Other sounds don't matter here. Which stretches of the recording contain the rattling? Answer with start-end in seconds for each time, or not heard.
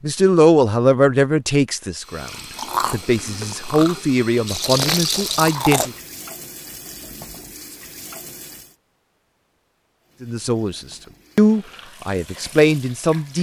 4.5-5.6.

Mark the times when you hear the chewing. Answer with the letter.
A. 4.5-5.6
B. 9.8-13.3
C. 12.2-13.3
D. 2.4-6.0
D.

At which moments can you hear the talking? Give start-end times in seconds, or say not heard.
0.0-2.3, 2.9-5.9, 10.2-13.3.